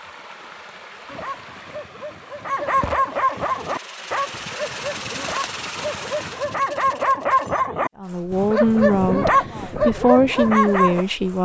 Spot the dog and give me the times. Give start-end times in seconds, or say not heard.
1.1-11.1.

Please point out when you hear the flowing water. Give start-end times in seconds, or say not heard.
0.0-6.6.